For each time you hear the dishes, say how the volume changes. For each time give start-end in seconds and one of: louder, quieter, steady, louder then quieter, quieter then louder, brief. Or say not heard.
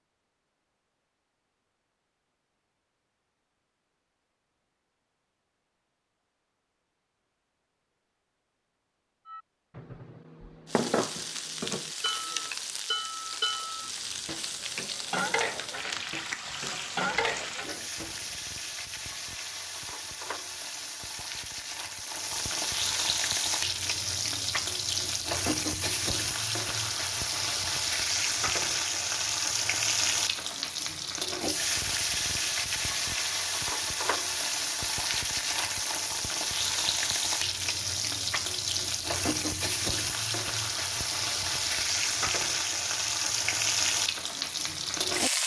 9.2-18.1 steady.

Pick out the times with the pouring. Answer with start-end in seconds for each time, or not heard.
not heard.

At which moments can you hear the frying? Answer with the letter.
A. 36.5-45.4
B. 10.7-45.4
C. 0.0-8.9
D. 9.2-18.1
B.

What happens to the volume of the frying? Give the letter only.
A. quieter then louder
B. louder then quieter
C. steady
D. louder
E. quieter
D.